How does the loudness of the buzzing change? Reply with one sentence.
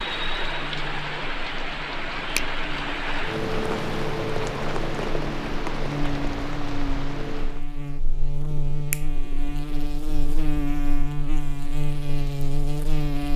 The loudness of the buzzing goes up.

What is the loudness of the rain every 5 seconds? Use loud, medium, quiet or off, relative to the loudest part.
loud, loud, off.